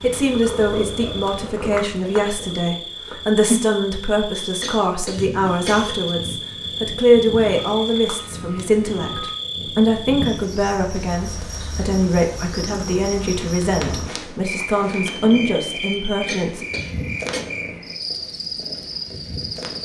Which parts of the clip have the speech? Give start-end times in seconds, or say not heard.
0.0-16.6.